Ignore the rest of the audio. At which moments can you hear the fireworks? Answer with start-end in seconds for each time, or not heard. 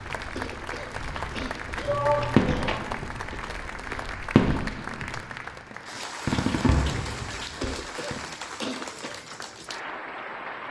2.3-8.2.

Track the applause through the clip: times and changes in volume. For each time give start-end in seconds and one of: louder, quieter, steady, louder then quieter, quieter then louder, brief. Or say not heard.
0.0-10.6 steady.